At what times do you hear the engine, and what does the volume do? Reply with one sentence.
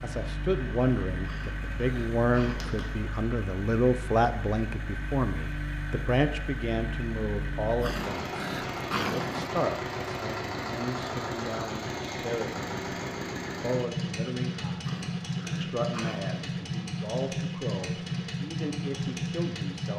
The engine can be heard from 0.0 to 19.9 s, getting louder.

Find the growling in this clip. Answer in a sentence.
You can hear the growling from 1.2 to 2.8 s, from 7.8 to 9.5 s and from 14.8 to 16.5 s.